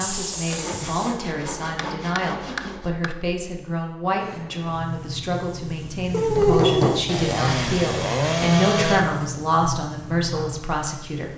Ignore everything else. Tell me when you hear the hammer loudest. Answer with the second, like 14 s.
7 s.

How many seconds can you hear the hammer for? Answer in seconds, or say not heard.
2 s.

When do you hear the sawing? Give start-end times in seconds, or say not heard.
0.3-2.9, 6.1-9.1.